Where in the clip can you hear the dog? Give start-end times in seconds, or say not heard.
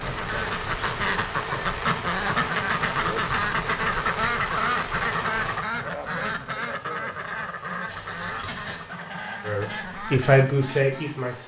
not heard.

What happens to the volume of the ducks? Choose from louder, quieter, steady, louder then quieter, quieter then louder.
quieter.